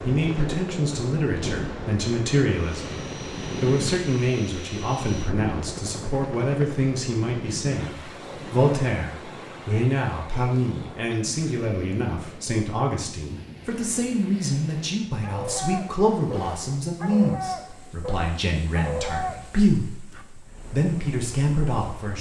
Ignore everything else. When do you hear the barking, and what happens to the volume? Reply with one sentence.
You can hear the barking from 15.2 to 20.2 s, at a steady volume.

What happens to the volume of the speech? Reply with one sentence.
The loudness of the speech stays about the same.